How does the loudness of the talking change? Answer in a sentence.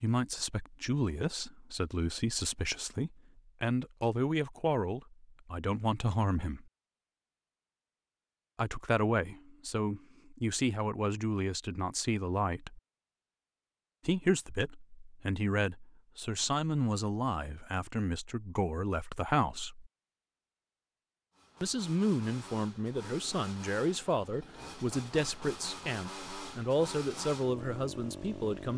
The loudness of the talking stays about the same.